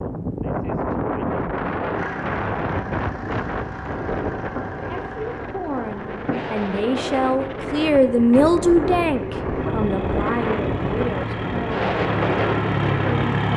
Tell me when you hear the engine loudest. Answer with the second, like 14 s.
13 s.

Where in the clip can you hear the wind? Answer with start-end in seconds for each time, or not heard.
0.0-13.2.